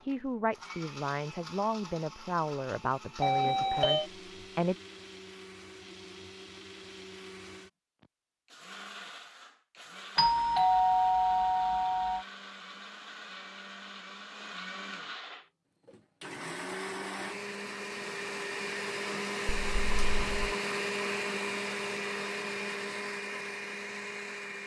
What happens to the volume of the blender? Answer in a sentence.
The loudness of the blender goes up.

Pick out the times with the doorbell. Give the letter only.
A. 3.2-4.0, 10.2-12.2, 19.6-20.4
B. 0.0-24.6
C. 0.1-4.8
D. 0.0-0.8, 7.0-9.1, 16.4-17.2
A.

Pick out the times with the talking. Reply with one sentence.
You can hear the talking from 0.1 to 4.8 s.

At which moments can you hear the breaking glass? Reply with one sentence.
You can't hear the breaking glass here.